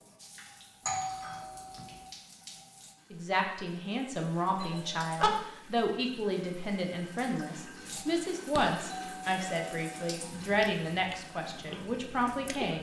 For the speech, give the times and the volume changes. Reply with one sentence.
You can hear the speech from 3.1 to 12.7 s, at a steady volume.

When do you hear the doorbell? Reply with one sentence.
The doorbell can be heard from 0.8 to 2.0 s, from 4.6 to 5.3 s and from 8.6 to 10.2 s.